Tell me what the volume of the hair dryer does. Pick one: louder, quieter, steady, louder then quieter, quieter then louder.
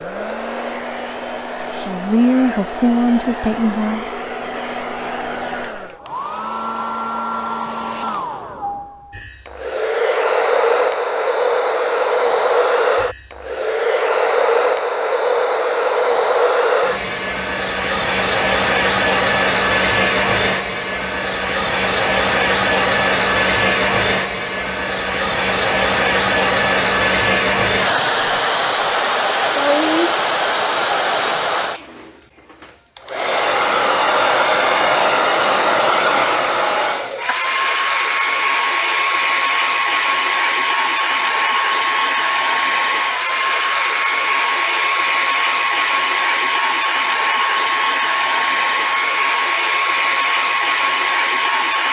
louder.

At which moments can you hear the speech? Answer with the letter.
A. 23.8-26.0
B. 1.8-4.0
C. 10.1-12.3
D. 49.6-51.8
B.